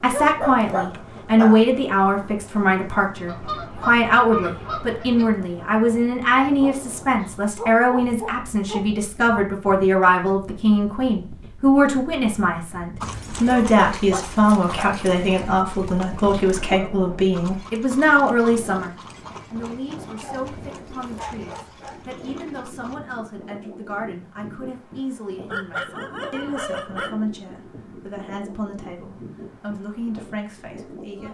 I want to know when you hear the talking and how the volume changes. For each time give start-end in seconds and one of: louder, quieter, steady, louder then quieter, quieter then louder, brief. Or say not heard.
0.0-31.2 quieter.